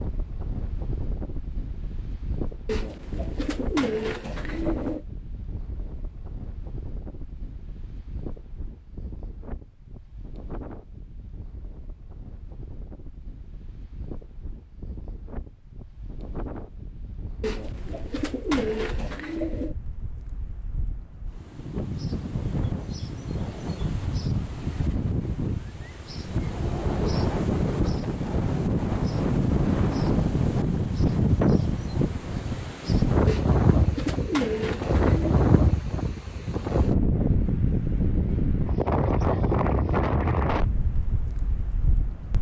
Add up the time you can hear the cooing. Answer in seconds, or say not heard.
7 s.